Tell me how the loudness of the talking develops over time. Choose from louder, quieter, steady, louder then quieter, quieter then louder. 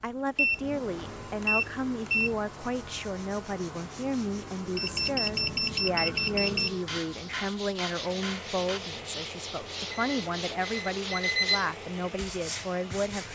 steady.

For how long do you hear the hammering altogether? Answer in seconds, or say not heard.
2 s.